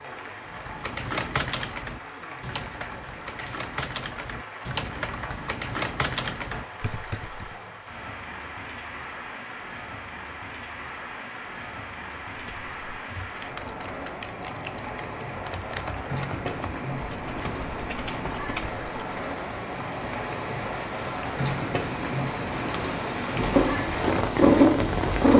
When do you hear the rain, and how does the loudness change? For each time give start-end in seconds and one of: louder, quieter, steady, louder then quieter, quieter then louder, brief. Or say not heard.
0.0-25.3 louder.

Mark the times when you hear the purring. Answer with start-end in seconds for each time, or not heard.
23.2-25.3.